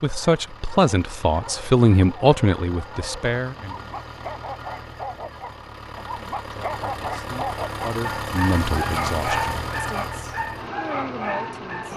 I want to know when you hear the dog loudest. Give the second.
9 s.